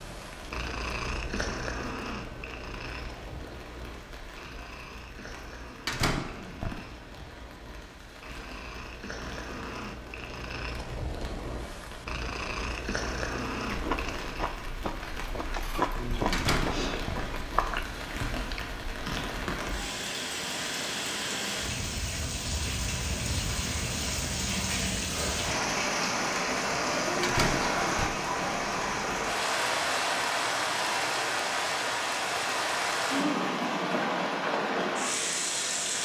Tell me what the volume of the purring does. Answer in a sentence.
The loudness of the purring goes down, then up.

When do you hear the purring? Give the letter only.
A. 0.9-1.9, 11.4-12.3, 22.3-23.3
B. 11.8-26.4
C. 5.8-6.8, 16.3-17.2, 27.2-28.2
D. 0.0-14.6
D.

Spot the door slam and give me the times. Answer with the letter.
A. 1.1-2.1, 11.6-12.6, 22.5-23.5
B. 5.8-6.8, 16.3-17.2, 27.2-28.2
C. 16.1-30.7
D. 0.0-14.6
B.